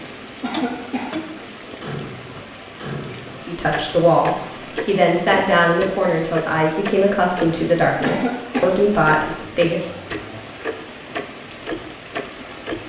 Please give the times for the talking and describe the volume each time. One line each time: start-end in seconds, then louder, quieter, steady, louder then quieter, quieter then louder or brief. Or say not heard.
3.4-9.8 steady.